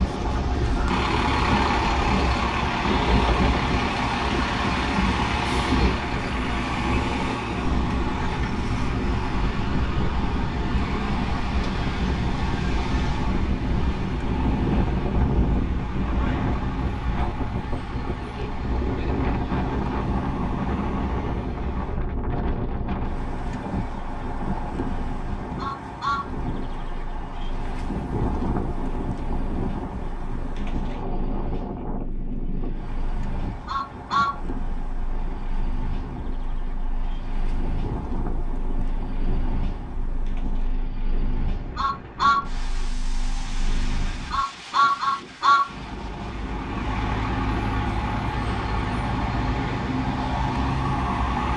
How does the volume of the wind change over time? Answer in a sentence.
The volume of the wind goes down.